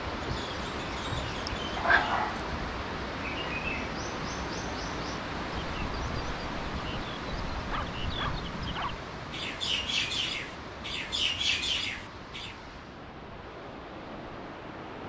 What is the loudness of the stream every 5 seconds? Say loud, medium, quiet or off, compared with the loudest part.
loud, loud, medium.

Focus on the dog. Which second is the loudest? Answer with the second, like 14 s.
2 s.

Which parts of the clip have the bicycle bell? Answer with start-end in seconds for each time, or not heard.
not heard.